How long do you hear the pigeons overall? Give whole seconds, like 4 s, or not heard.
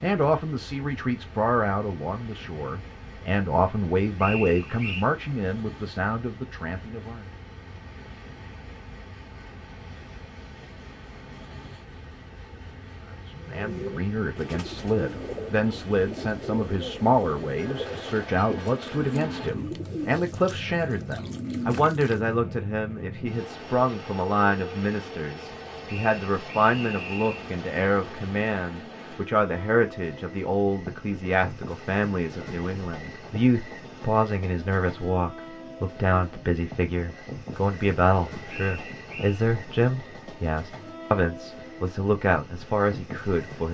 9 s.